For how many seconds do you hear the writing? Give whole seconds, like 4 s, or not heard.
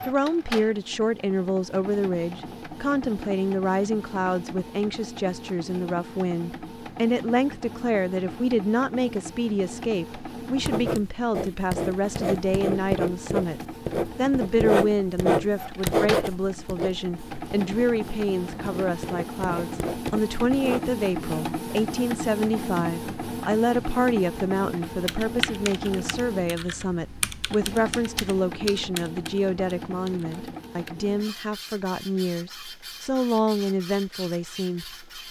10 s.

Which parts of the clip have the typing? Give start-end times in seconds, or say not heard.
24.9-30.9.